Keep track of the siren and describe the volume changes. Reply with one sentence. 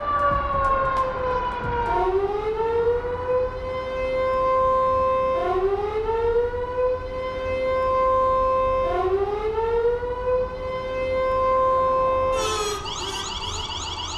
The volume of the siren stays about the same.